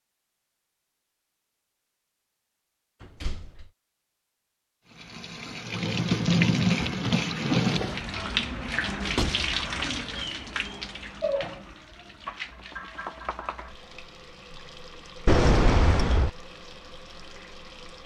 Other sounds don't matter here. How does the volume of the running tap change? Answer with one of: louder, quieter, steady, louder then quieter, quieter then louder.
quieter.